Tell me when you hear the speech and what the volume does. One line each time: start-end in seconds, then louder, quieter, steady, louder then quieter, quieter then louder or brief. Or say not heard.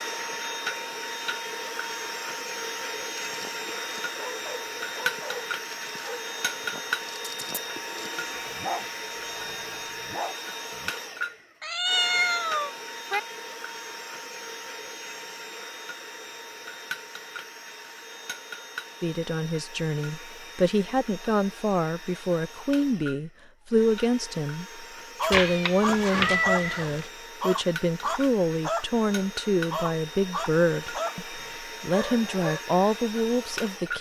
19.0-33.9 steady.